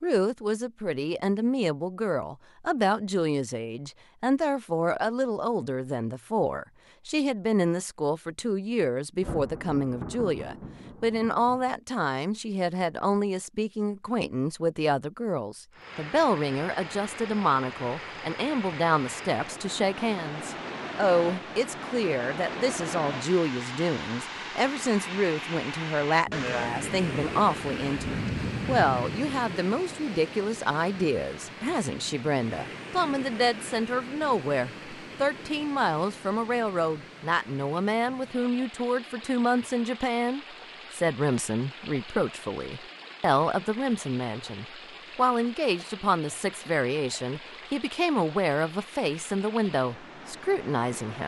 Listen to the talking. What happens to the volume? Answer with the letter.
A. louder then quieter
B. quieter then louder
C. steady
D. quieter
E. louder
C.